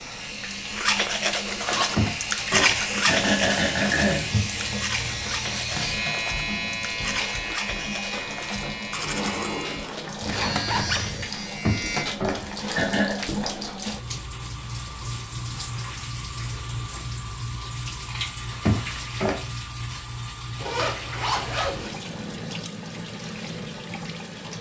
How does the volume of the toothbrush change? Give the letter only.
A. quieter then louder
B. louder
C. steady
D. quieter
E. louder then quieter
D.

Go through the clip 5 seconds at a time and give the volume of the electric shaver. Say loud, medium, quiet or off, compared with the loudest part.
loud, loud, loud, off, off.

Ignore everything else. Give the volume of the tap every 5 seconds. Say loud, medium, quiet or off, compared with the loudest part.
medium, loud, loud, loud, loud.